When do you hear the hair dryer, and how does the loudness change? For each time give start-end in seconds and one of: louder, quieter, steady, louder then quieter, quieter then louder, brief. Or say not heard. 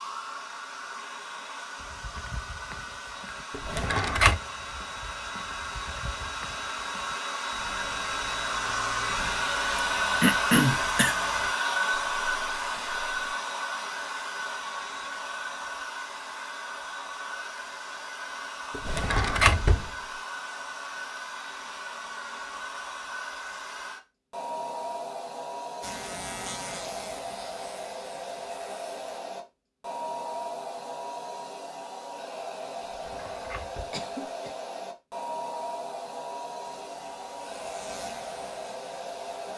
0.0-39.5 louder then quieter.